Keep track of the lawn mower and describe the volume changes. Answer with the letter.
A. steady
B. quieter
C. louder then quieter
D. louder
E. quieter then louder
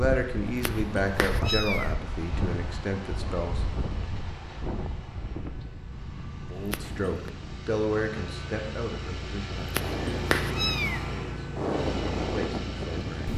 D.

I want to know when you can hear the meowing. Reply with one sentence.
You can hear the meowing from 0.5 to 1.9 s, from 6.5 to 7.3 s and from 9.6 to 11.1 s.